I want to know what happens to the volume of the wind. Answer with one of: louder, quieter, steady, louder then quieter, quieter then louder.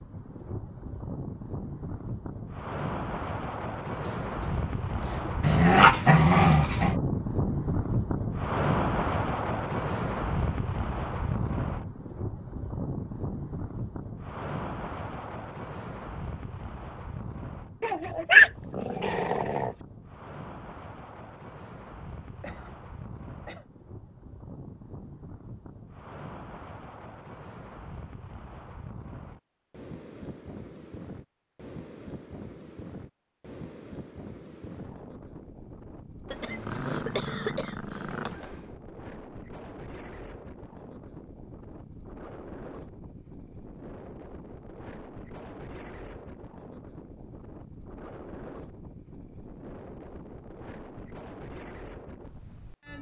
quieter.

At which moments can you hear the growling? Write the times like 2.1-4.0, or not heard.
5.4-7.0, 17.8-19.8, 36.5-38.5.